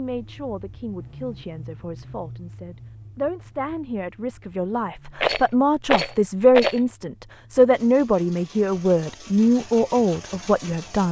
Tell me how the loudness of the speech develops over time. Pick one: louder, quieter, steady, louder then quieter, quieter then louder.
louder.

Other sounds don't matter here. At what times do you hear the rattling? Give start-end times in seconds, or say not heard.
5.2-6.8.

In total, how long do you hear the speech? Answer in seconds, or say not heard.
11 s.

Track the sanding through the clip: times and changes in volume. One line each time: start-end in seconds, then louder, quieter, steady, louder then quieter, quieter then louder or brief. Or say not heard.
not heard.